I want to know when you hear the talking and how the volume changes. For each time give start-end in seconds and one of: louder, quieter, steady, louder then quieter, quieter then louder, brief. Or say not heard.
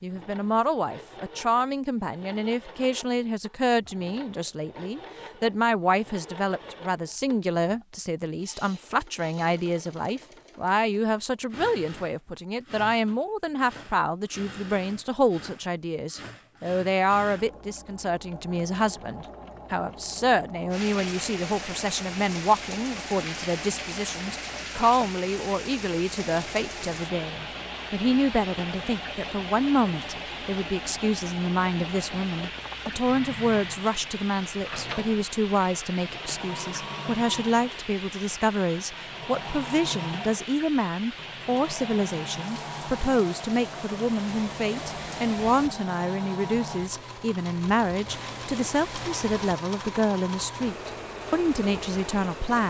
0.0-52.6 steady.